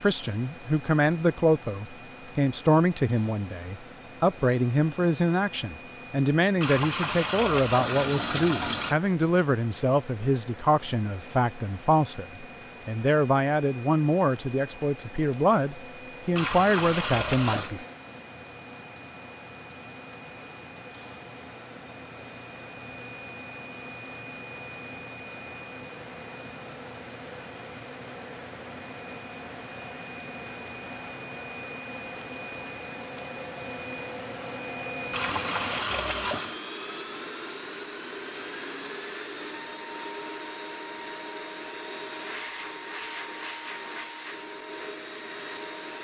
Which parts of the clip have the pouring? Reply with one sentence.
The pouring can be heard from 6.5 to 8.9 s, from 16.3 to 17.8 s and from 35.1 to 36.6 s.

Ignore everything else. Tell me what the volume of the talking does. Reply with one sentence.
The loudness of the talking stays about the same.